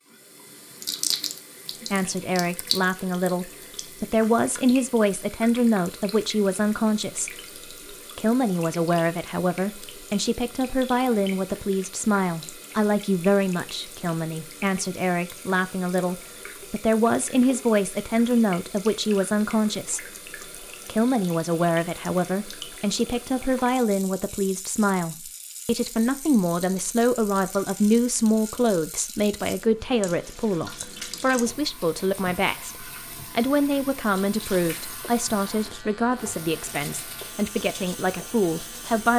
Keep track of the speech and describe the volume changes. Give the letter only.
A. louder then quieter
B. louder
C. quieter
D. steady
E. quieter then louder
D.